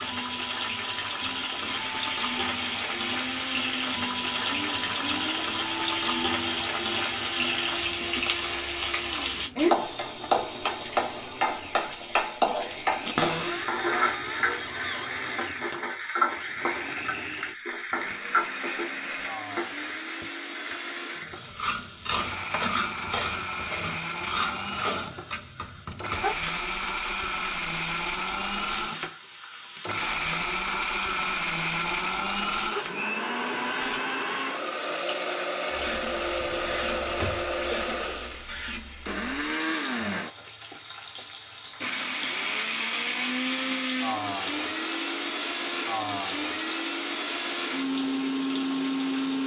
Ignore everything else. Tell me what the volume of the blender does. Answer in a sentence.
The loudness of the blender goes up.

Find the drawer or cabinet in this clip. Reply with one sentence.
The drawer or cabinet can be heard from 13.1 to 15.1 s and from 36.4 to 37.5 s.